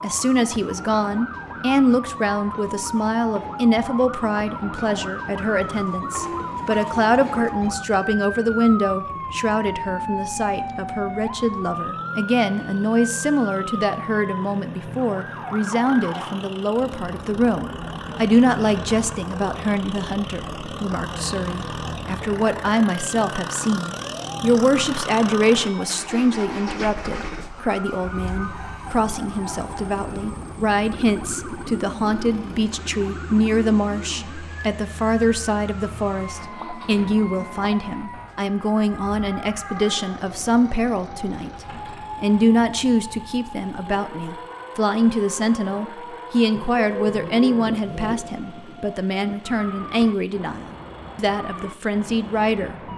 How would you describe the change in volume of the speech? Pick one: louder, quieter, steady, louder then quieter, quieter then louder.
steady.